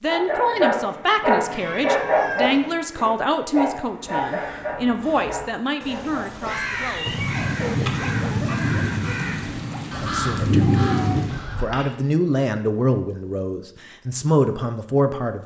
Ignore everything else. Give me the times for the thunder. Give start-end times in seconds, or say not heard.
7.0-11.4.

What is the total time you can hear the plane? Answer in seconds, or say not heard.
not heard.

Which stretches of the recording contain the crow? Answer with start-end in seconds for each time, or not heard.
3.7-11.7.